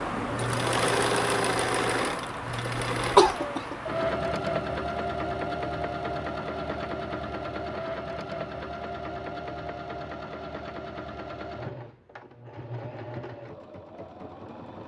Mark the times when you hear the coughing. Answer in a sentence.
You can hear the coughing from 3.1 to 3.8 s.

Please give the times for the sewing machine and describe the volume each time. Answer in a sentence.
The sewing machine can be heard from 0.0 to 14.8 s, getting quieter.